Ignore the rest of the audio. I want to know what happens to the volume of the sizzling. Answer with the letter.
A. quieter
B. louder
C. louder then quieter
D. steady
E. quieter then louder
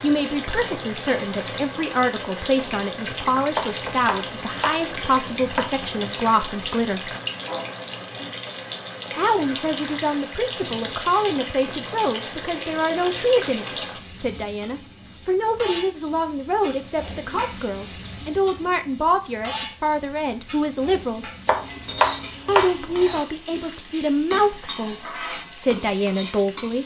D.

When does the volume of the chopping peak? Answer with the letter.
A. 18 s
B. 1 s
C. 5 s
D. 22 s
D.